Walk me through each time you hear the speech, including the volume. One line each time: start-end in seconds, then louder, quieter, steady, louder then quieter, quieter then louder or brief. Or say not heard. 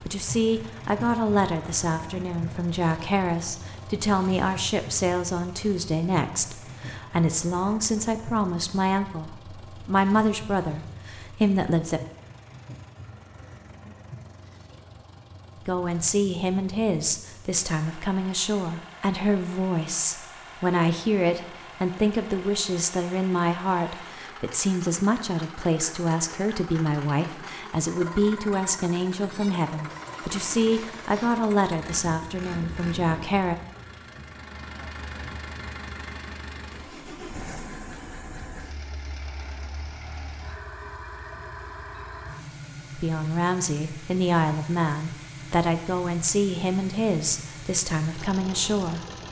0.1-12.0 steady
15.7-33.5 steady
43.0-49.0 steady.